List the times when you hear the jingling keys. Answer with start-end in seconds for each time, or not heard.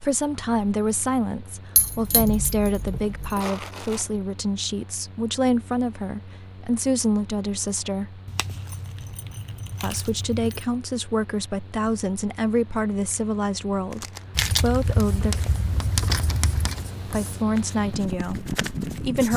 1.8-3.4, 8.2-10.7, 14.3-16.9.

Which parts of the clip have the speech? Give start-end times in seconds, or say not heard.
0.0-8.2, 9.8-15.3, 17.1-19.3.